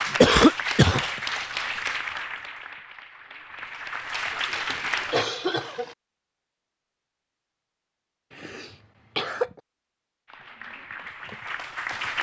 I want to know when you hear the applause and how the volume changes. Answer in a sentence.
The applause can be heard from 0.0 to 5.2 s, getting quieter then louder; and briefly from 10.2 to 12.1 s.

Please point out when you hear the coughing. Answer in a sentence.
You can hear the coughing from 0.2 to 1.1 s, from 4.7 to 6.0 s and from 8.3 to 9.6 s.